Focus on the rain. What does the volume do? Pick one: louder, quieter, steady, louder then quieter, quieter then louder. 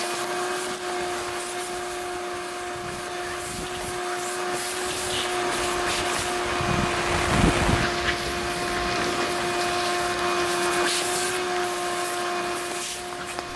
louder then quieter.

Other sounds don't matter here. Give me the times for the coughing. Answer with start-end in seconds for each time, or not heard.
not heard.